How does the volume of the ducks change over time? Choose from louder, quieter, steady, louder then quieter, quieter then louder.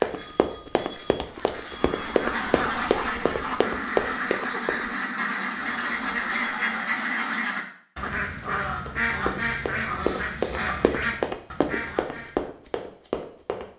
steady.